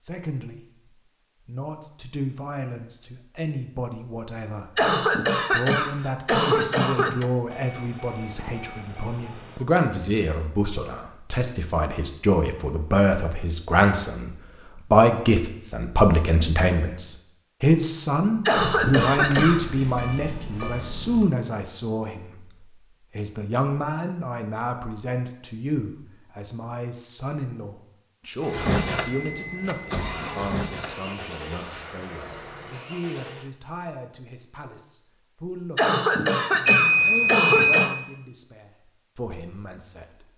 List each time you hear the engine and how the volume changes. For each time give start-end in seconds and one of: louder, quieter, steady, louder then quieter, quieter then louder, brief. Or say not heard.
28.4-33.5 quieter.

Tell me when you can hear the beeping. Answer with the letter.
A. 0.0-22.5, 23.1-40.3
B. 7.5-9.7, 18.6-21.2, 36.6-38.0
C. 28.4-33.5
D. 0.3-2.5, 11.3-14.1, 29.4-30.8
B.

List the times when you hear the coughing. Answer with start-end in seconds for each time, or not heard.
4.8-7.3, 18.4-19.8, 35.8-38.0.